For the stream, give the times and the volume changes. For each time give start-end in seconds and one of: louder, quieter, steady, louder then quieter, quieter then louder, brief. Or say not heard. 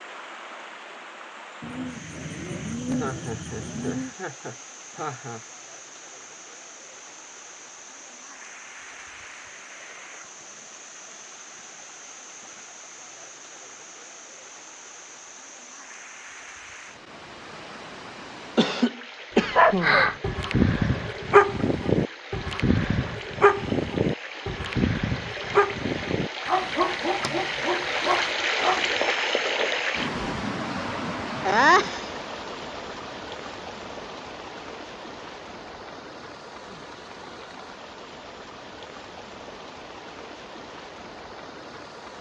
0.0-42.1 louder then quieter.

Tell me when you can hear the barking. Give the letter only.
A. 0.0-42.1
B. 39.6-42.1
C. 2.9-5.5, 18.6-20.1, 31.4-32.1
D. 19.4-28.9
D.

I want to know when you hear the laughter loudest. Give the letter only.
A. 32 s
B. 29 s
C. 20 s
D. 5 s
A.